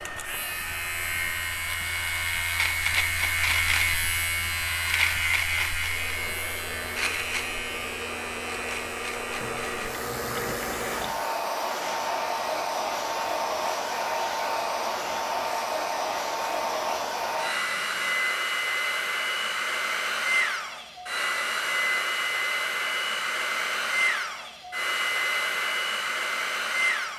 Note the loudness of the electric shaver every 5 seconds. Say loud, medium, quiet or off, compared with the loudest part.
loud, loud, quiet, quiet, off, off.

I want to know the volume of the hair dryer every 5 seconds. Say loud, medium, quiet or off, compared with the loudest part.
quiet, medium, loud, loud, loud, loud.